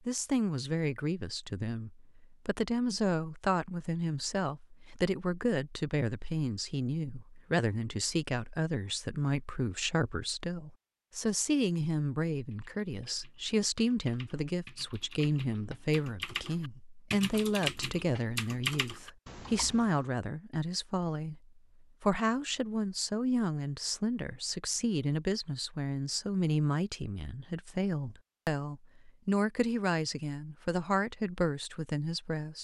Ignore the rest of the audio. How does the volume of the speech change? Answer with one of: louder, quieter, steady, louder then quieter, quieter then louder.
steady.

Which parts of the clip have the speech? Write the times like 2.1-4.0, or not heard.
0.1-32.6.